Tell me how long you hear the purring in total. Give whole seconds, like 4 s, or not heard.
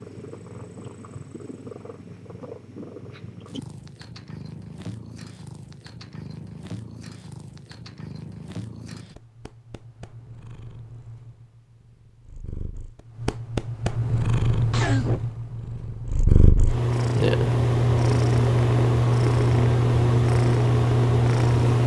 22 s.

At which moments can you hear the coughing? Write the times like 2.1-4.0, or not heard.
14.7-15.2.